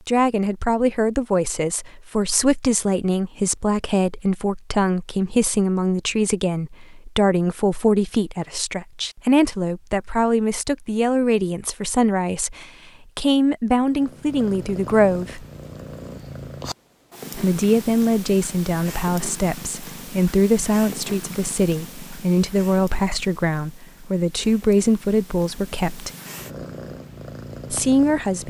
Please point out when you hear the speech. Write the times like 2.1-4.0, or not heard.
0.1-15.4, 17.4-26.1, 27.7-28.4.